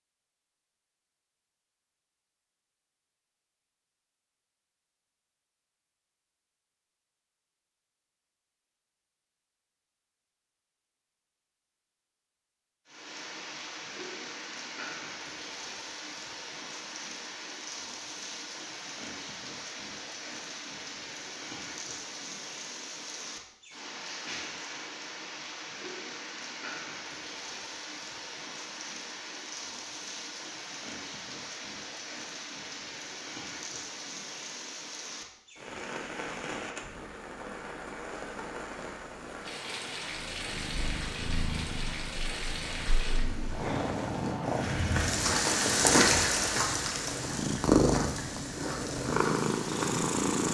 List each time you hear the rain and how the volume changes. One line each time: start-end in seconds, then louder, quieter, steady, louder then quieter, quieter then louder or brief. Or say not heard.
12.8-50.4 louder.